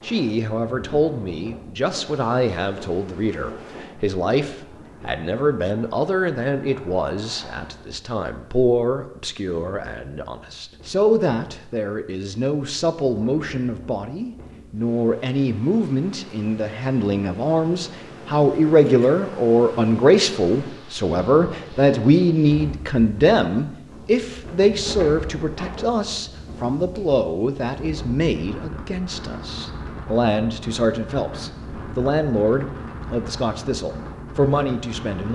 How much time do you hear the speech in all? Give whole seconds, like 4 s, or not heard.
35 s.